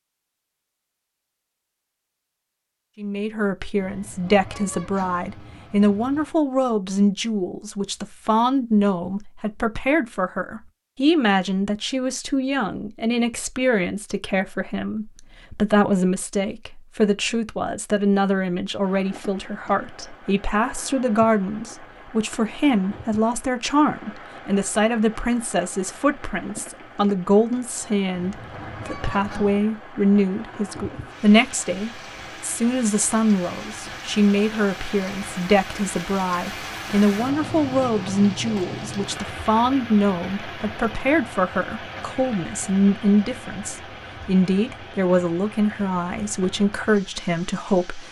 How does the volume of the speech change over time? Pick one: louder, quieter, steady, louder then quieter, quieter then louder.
steady.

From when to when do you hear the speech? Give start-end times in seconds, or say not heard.
3.0-48.0.